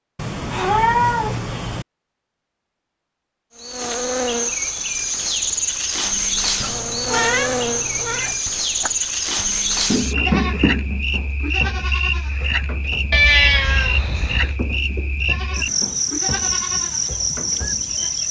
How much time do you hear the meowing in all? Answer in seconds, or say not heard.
5 s.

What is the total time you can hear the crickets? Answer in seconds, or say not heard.
15 s.